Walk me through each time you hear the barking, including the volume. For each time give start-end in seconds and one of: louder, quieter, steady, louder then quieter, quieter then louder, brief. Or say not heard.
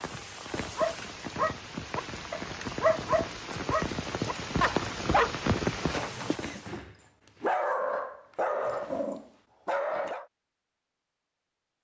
0.6-10.2 steady.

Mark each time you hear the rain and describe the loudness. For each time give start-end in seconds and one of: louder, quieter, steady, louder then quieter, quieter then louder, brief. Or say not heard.
0.0-6.8 louder.